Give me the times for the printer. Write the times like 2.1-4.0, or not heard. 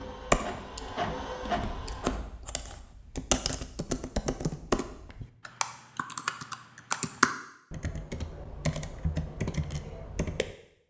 0.0-2.2.